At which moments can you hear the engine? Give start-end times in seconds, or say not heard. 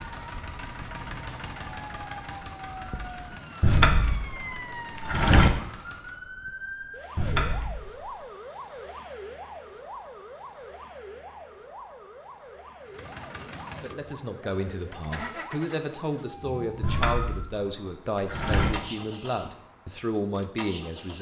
0.0-6.2, 12.8-21.1.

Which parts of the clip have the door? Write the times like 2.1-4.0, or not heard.
3.6-5.5, 7.2-8.0, 16.8-18.7.